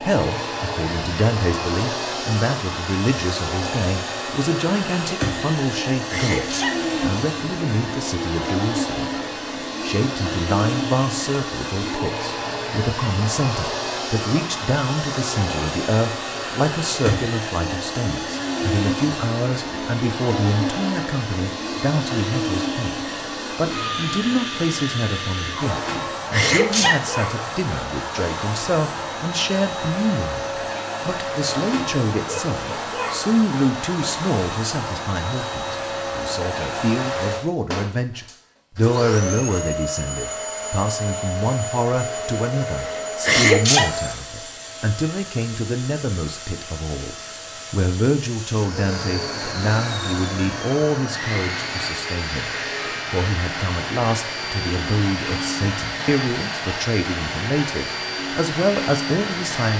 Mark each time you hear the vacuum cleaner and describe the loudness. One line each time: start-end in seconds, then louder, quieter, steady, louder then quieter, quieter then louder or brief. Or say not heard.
0.0-59.7 steady.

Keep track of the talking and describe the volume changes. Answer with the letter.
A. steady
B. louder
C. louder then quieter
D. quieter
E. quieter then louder
A.